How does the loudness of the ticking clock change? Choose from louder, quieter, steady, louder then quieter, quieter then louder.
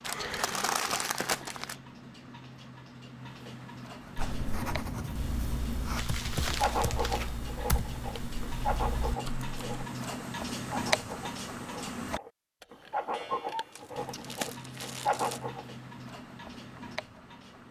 louder then quieter.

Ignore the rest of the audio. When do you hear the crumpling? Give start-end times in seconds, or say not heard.
0.0-1.8, 6.0-7.3, 13.8-15.4.